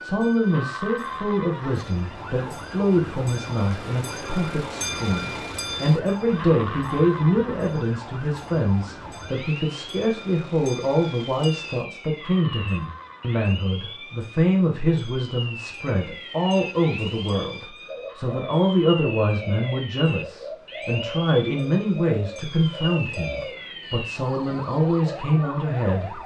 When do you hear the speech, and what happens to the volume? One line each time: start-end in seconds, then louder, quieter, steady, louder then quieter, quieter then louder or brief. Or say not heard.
0.0-26.2 steady.